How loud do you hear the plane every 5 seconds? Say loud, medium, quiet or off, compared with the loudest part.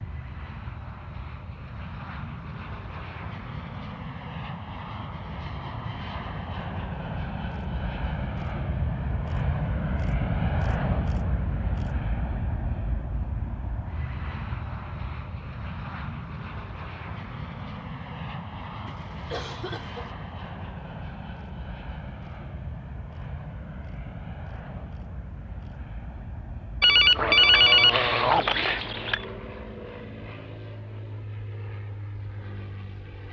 medium, loud, loud, medium, medium, medium, medium.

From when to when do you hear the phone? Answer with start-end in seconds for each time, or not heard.
26.8-29.2.